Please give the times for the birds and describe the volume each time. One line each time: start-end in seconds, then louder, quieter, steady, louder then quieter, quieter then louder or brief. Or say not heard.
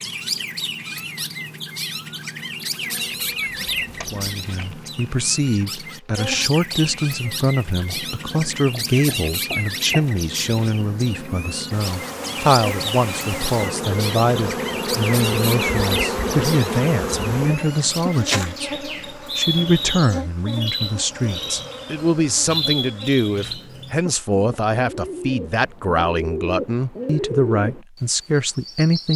0.0-29.1 steady.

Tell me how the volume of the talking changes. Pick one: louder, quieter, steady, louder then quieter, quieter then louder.
steady.